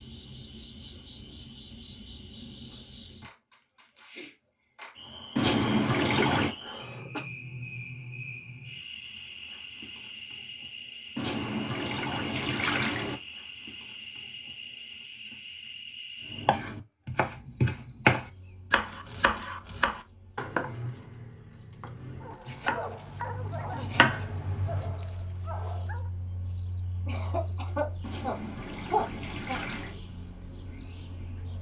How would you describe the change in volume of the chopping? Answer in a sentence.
The volume of the chopping goes down, then up.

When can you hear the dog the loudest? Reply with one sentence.
The volume of the dog peaks at 23 seconds.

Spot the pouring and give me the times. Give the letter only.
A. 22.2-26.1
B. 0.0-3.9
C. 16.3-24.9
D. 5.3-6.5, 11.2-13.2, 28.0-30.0
D.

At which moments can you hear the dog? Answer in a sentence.
The dog can be heard from 22.2 to 26.1 s.